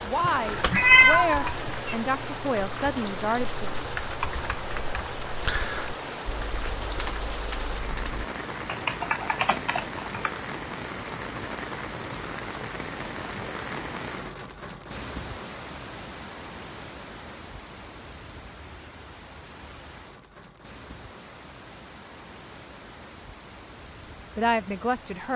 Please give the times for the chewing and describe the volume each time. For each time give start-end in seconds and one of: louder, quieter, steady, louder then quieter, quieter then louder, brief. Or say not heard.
not heard.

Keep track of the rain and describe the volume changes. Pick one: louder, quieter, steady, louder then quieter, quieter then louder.
quieter.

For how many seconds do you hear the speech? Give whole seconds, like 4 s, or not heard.
5 s.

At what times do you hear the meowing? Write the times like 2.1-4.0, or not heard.
0.2-1.9.